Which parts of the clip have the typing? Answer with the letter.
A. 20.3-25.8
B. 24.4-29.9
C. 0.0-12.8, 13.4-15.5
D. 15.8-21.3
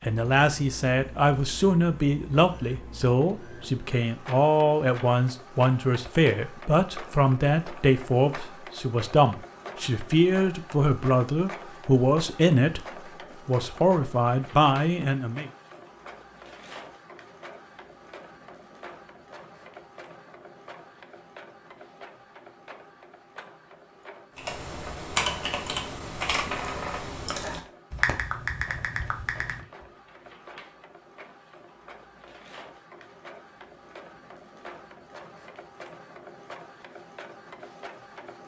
B.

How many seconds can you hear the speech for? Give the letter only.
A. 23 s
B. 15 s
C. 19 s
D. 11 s
B.